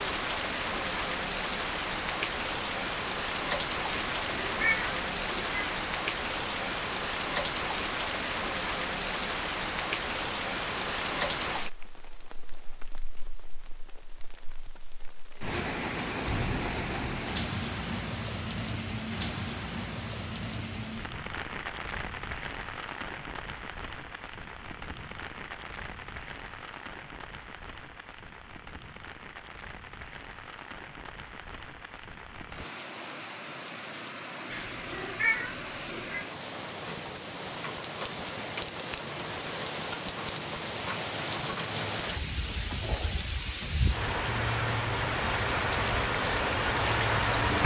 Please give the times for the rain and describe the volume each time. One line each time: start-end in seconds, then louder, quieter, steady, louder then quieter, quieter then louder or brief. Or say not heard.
0.0-47.6 quieter then louder.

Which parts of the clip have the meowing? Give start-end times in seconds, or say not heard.
4.1-5.8, 34.5-36.2.